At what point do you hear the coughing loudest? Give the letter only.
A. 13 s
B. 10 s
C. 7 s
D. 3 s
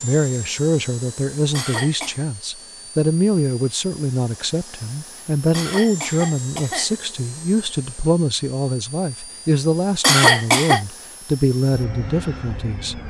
B.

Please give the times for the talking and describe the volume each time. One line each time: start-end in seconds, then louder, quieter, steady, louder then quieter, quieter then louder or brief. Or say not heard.
0.0-13.0 steady.